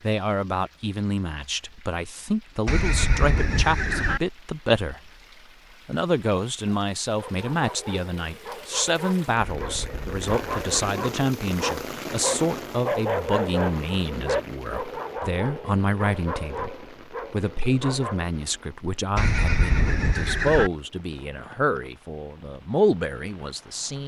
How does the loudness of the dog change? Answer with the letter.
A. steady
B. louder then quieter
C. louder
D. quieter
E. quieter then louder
B.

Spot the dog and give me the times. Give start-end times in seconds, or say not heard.
6.7-18.2.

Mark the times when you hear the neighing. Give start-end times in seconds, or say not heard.
2.6-4.2, 9.3-10.9, 19.1-20.7.